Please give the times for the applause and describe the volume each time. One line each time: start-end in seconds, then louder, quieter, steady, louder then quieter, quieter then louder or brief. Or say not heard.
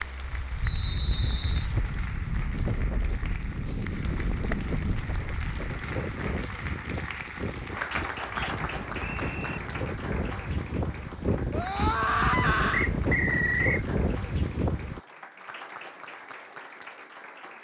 0.0-17.5 louder then quieter.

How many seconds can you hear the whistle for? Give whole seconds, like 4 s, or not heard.
3 s.